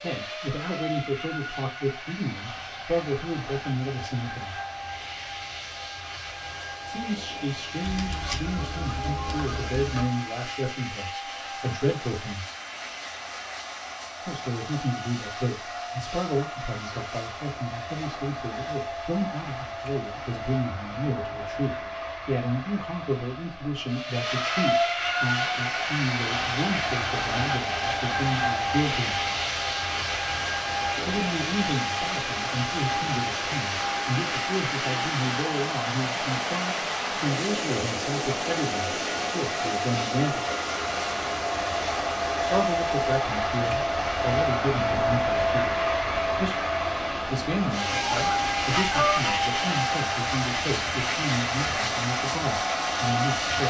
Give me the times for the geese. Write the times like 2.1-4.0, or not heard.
7.8-10.1, 48.0-49.3.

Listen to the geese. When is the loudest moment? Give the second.
49 s.